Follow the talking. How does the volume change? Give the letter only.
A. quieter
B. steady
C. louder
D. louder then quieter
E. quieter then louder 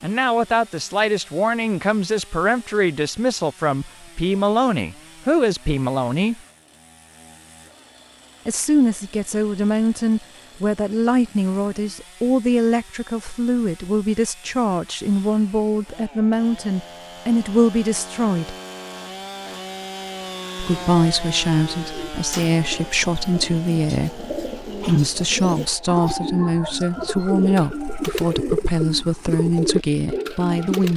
B.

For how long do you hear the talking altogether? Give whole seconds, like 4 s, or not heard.
27 s.